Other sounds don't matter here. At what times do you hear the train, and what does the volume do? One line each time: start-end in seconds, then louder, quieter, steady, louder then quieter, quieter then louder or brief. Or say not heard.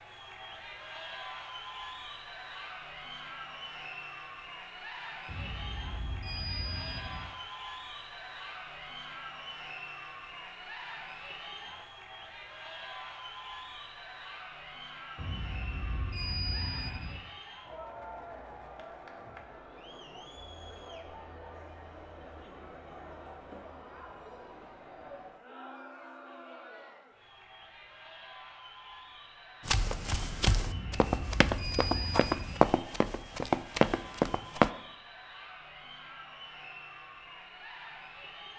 not heard.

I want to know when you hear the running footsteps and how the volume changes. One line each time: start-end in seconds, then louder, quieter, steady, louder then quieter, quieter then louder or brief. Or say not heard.
29.6-34.7 louder.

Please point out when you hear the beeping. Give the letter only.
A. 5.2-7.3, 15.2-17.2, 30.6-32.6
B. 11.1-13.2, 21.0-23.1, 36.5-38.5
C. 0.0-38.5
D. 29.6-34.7
A.